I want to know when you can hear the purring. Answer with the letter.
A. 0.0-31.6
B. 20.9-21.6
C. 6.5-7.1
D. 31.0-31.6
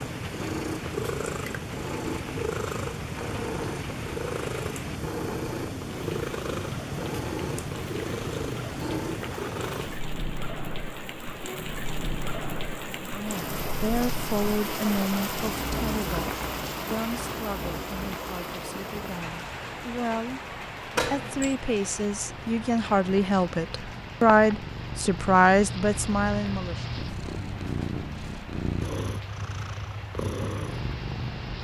A.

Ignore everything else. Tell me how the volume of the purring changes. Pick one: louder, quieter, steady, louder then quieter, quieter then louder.
quieter then louder.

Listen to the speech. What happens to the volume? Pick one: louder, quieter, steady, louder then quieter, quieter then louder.
quieter then louder.